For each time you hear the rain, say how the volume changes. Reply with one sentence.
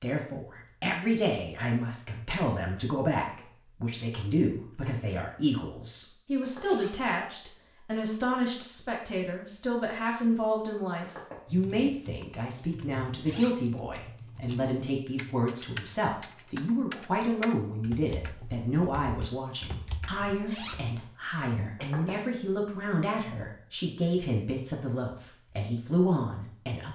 The rain can't be heard in this clip.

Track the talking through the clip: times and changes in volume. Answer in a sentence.
You can hear the talking from 0.0 to 26.9 s, at a steady volume.